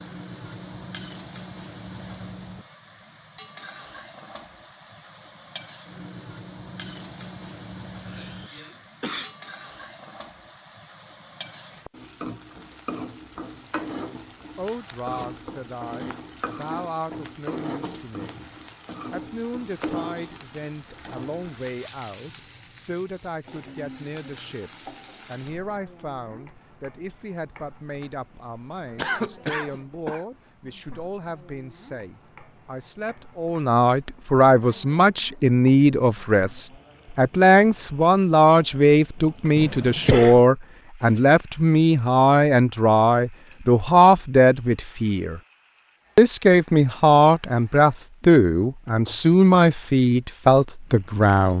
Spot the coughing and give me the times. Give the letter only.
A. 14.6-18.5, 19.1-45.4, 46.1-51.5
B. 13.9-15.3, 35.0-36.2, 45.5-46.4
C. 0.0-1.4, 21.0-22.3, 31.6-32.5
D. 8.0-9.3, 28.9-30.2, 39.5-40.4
D.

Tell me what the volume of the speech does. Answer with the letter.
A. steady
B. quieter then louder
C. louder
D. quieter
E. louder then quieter
C.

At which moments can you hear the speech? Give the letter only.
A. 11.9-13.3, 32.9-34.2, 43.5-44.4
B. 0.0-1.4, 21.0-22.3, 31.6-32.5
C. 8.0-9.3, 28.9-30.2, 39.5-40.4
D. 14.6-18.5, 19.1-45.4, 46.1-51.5
D.